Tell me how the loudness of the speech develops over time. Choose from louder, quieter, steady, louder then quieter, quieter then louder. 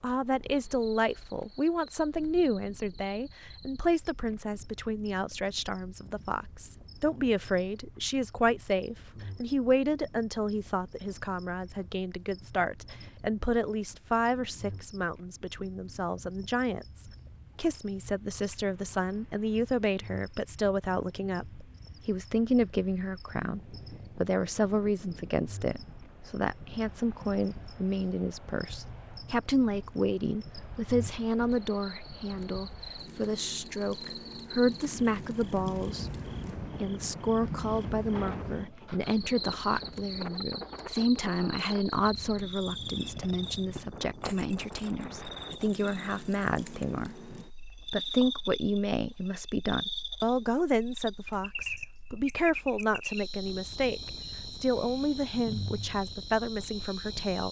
steady.